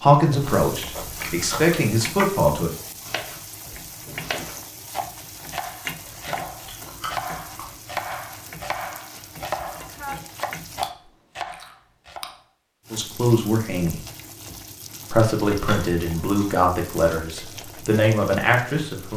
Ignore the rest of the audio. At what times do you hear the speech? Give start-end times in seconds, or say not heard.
0.0-2.7, 12.9-14.0, 15.1-19.1.